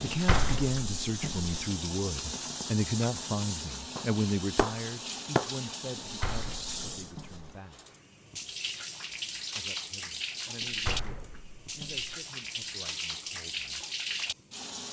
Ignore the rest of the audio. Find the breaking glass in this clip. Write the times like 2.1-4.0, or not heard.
4.0-5.6.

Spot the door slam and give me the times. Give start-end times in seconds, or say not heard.
0.0-1.5, 6.0-7.5, 10.6-12.1.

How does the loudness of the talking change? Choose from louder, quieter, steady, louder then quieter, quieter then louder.
quieter.